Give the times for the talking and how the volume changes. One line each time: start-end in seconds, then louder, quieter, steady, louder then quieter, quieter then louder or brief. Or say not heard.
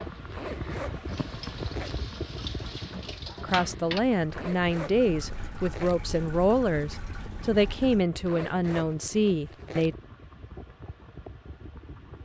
3.4-9.9 steady.